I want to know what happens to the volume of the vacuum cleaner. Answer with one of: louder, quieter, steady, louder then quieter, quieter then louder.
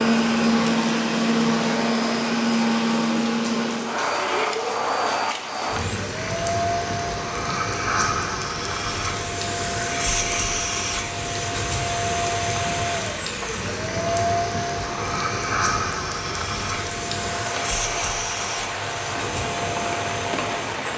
quieter.